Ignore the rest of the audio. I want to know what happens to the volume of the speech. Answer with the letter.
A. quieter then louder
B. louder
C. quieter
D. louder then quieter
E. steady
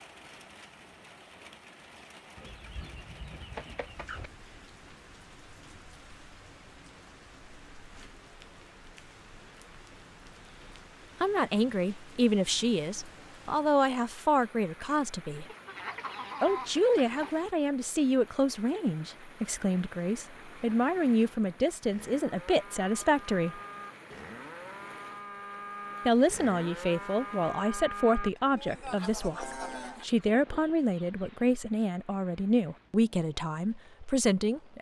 E.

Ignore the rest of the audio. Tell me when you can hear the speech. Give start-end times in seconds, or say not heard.
11.2-15.4, 16.4-23.6, 26.1-34.7.